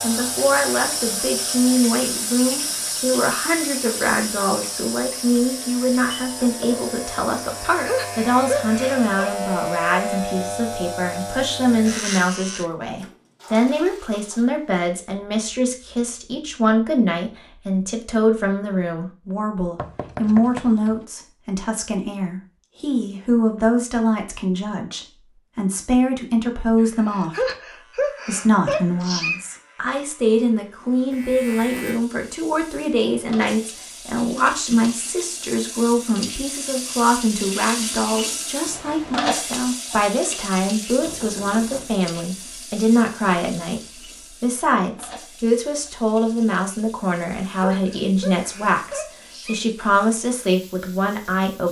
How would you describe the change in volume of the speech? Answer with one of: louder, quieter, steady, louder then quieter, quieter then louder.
steady.